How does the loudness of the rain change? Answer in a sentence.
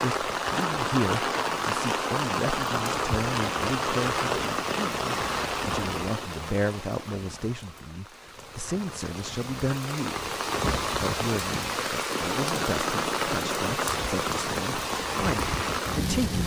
The loudness of the rain goes down, then up.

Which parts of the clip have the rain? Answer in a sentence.
You can hear the rain from 0.0 to 16.4 s.